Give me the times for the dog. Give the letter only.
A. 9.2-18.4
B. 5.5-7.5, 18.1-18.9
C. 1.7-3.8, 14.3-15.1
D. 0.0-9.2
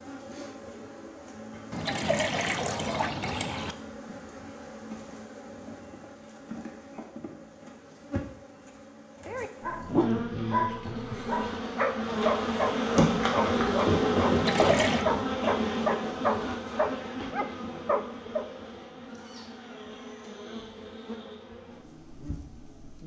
A.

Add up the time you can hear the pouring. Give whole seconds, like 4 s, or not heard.
3 s.